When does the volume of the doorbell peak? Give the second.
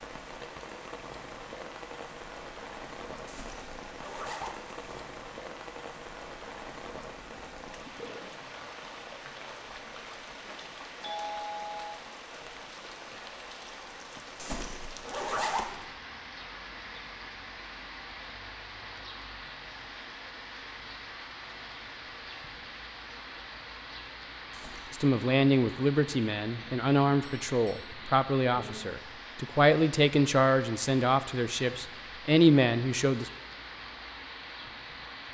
11 s.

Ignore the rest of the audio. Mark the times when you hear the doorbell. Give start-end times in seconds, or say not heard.
11.0-12.1, 27.2-27.9.